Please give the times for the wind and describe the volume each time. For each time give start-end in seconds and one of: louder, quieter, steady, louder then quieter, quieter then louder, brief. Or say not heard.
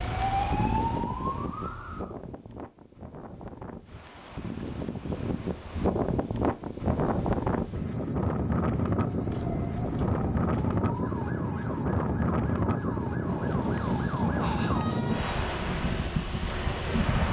0.0-17.2 louder.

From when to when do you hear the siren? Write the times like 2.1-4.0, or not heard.
0.0-2.1, 9.1-15.3.